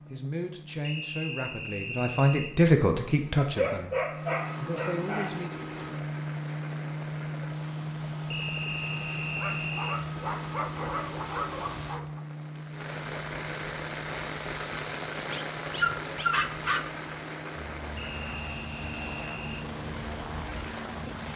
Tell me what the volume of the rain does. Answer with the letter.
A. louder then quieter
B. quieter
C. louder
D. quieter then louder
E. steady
A.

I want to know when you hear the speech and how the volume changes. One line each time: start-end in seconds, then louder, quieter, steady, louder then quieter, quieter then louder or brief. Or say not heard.
0.1-5.5 louder then quieter.